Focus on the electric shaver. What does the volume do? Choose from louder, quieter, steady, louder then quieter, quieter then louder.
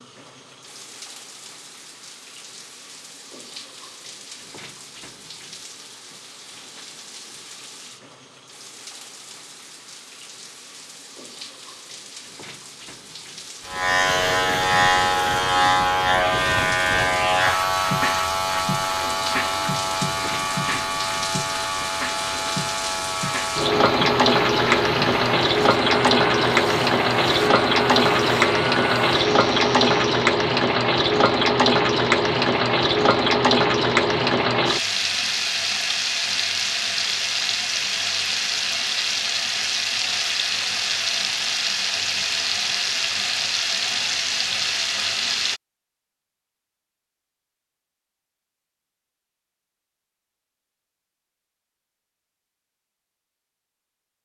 quieter.